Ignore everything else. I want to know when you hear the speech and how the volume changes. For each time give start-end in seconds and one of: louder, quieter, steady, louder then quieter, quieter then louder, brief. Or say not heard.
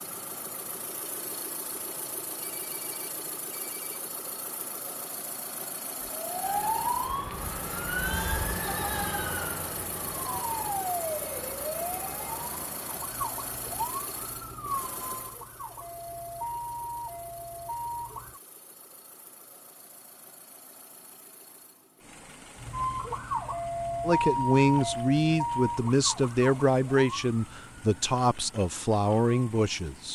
24.1-30.1 steady.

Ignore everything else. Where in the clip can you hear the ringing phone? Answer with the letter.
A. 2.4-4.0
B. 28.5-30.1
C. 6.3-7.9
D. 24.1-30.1
A.